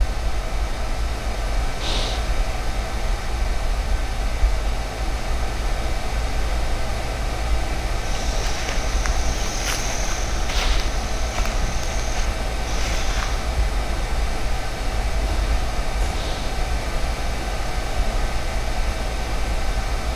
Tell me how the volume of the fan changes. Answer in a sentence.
The volume of the fan stays about the same.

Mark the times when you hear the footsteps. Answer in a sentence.
The footsteps can be heard from 8.0 to 13.4 s.